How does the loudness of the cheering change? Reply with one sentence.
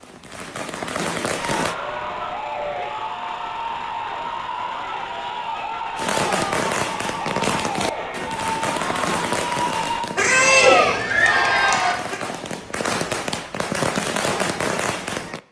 The volume of the cheering goes up.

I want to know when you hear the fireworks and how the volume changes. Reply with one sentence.
The fireworks can be heard briefly from 0.0 to 1.8 s; and from 6.0 to 15.4 s, getting quieter then louder.